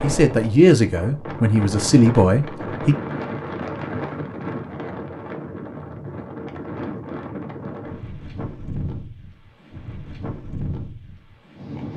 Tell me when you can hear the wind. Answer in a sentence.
The wind can be heard from 0.0 to 11.9 s.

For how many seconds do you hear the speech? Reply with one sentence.
The speech can be heard for 3 seconds in total.